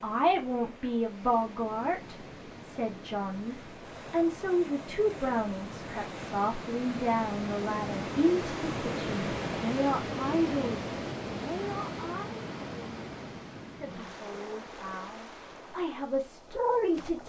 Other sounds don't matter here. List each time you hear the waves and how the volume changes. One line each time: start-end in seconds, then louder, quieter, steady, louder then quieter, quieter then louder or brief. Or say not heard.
0.0-17.2 louder then quieter.